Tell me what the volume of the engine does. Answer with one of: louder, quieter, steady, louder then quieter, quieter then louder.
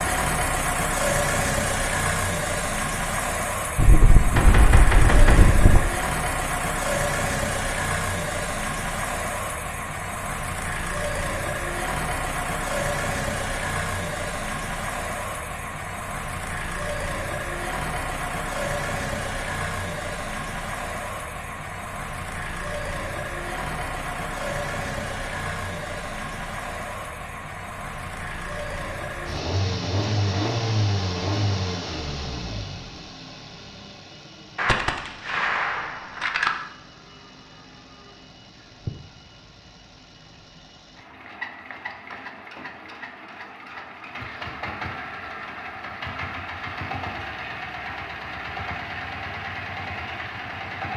quieter.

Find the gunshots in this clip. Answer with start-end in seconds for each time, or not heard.
3.8-5.8, 34.5-36.5.